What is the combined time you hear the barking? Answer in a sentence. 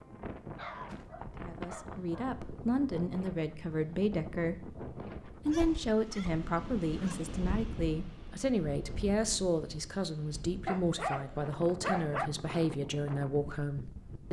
The barking can be heard for 5 seconds in total.